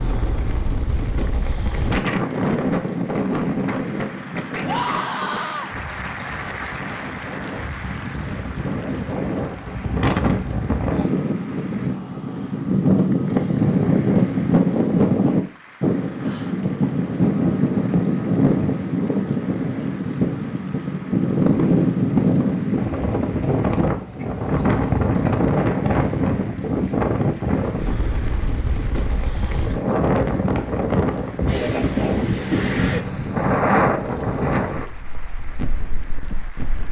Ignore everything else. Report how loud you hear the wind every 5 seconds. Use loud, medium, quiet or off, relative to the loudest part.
medium, medium, loud, loud, loud, loud, loud, quiet.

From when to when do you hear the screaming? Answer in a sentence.
You can hear the screaming from 4.7 to 5.7 s.